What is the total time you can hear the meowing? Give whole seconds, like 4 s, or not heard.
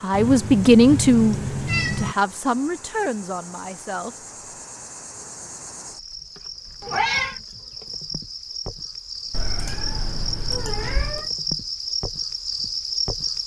5 s.